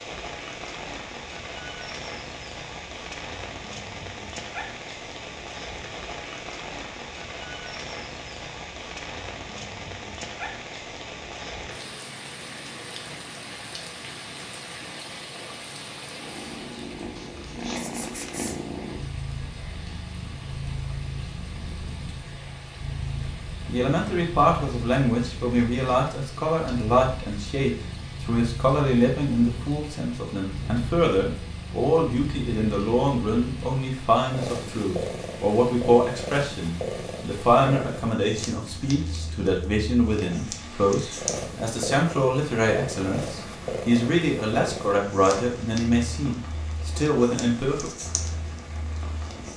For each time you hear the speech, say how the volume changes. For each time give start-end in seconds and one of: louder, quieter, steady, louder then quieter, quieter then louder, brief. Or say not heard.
23.6-47.9 steady.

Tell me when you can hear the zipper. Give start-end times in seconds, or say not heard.
17.1-18.5.